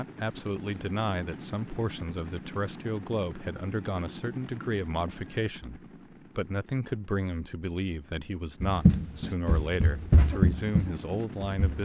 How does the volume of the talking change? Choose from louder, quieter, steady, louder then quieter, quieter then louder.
steady.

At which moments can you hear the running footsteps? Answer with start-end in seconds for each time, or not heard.
8.6-11.8.